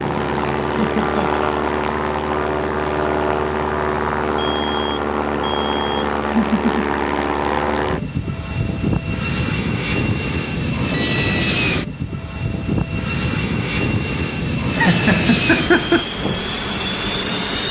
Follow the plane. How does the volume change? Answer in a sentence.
The volume of the plane stays about the same.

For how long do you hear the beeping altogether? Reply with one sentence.
The beeping can be heard for 2 seconds in total.